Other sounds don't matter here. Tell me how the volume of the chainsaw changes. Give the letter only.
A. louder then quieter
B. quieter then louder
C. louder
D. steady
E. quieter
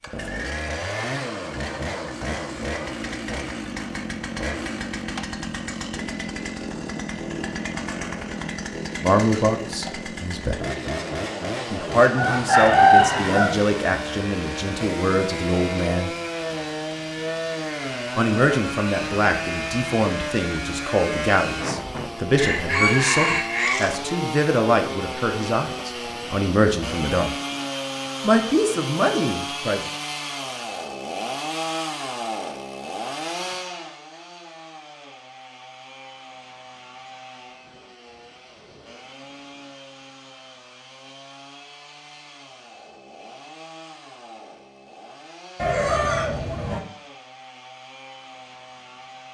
E.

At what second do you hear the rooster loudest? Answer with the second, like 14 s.
13 s.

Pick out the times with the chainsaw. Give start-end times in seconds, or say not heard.
0.0-49.2.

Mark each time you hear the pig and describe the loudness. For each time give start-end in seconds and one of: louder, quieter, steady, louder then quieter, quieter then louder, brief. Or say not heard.
not heard.